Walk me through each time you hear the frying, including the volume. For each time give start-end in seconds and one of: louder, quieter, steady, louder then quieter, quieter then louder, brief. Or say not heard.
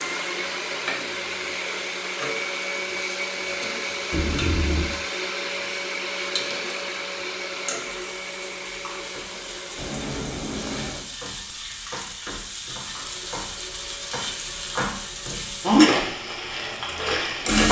0.0-17.6 louder.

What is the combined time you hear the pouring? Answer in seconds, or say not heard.
2 s.